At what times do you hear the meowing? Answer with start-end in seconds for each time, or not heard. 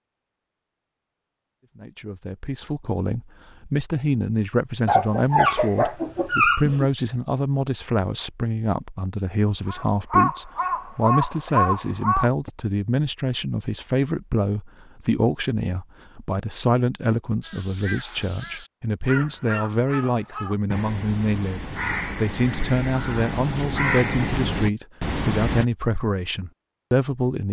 not heard.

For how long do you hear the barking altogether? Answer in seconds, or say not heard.
2 s.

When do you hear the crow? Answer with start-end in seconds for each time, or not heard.
9.5-12.5, 17.4-25.6.